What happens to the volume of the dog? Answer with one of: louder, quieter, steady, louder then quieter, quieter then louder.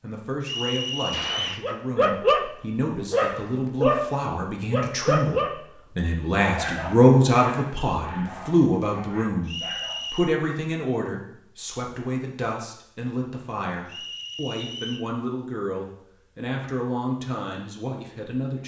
quieter.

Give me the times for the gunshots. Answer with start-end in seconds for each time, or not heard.
1.1-1.6.